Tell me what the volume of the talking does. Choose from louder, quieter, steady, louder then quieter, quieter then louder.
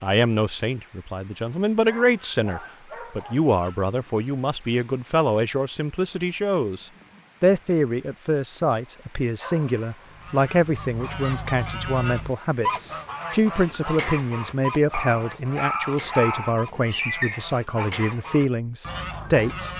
steady.